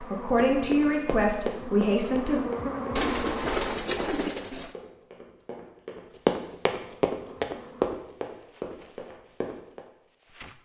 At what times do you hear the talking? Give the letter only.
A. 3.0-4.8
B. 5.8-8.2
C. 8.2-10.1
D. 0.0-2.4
D.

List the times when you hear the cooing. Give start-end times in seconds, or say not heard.
3.0-4.8.